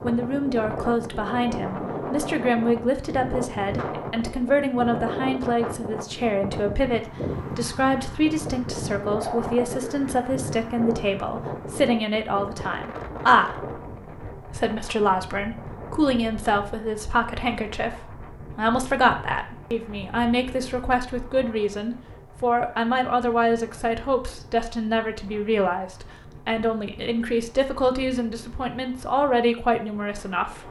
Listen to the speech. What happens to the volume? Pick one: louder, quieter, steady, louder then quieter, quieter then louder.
steady.